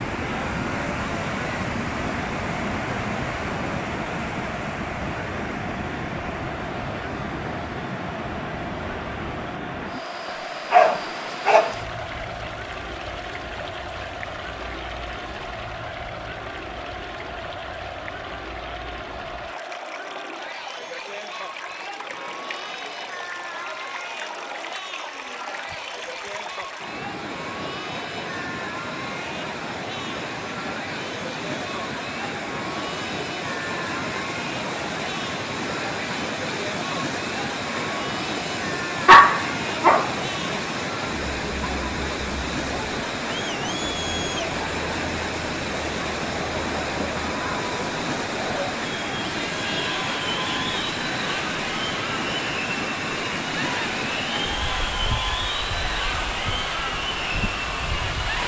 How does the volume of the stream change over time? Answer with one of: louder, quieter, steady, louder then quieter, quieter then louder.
quieter then louder.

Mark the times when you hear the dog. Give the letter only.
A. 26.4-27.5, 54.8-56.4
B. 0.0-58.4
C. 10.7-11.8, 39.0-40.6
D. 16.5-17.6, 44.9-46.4
C.